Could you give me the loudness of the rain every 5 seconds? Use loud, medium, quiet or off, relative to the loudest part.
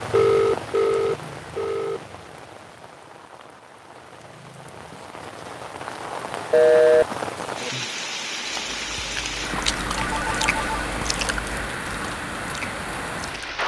medium, loud, loud.